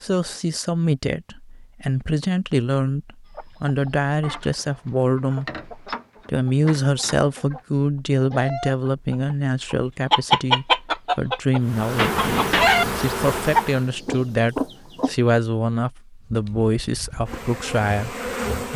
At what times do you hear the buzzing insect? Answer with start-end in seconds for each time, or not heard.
11.6-13.9, 16.2-18.7.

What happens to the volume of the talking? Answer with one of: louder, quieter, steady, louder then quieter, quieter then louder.
steady.